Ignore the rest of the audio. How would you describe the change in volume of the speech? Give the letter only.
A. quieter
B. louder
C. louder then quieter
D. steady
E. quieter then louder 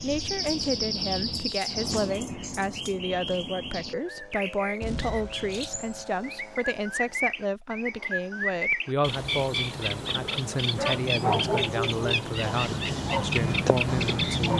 D.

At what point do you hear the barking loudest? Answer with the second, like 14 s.
11 s.